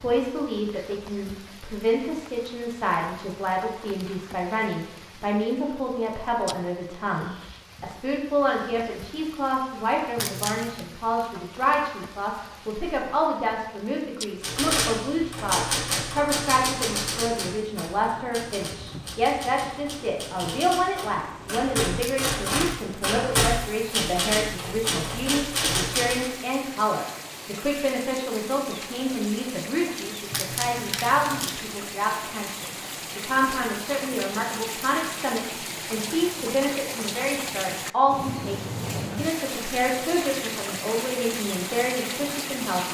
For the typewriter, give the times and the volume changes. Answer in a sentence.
The typewriter can be heard from 14.4 to 26.3 s, getting quieter then louder.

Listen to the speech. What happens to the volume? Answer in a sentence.
The loudness of the speech stays about the same.